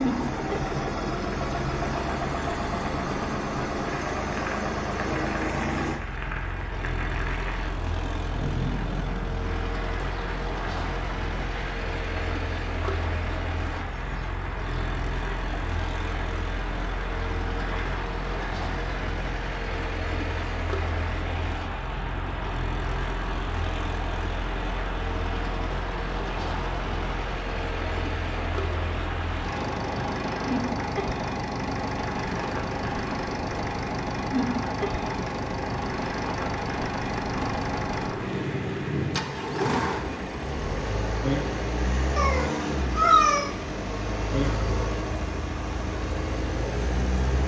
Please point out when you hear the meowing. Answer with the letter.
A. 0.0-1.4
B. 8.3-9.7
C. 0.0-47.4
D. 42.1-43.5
D.